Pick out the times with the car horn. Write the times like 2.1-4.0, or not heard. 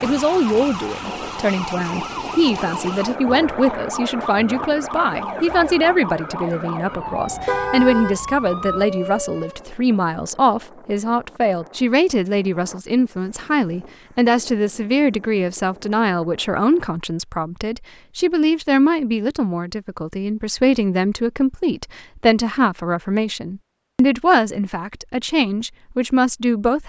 7.2-8.2.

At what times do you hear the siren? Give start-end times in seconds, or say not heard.
0.0-9.7.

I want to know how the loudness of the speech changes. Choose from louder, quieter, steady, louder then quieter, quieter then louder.
steady.